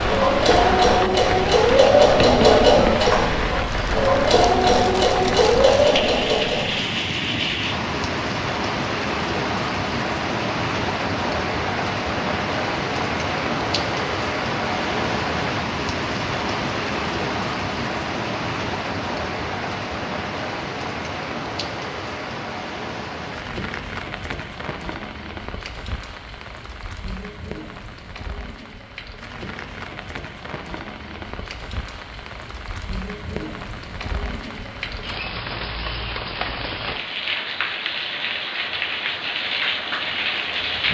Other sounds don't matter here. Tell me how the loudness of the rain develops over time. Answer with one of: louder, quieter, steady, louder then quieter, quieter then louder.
quieter then louder.